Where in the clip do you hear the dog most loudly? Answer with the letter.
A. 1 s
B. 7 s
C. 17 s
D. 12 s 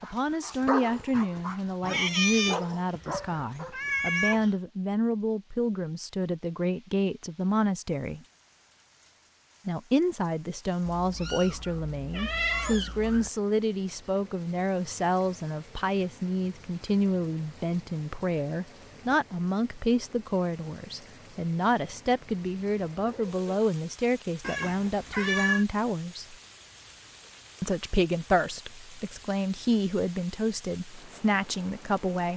A.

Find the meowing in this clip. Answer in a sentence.
You can hear the meowing from 1.9 to 4.5 s, from 10.8 to 13.3 s and from 24.4 to 25.6 s.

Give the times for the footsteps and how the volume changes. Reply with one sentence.
The footsteps can't be heard in this clip.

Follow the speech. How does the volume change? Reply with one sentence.
The loudness of the speech stays about the same.